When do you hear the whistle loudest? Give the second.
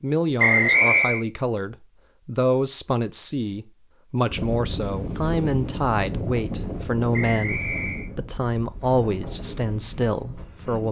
1 s.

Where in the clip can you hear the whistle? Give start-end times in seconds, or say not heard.
0.3-1.2, 7.1-8.1.